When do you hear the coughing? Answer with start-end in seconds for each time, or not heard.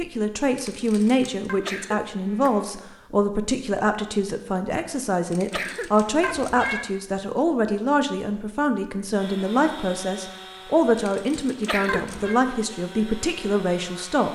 1.6-2.9, 5.5-6.1, 11.7-12.2.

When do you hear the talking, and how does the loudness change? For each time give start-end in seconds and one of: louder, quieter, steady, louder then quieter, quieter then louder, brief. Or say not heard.
0.0-14.3 steady.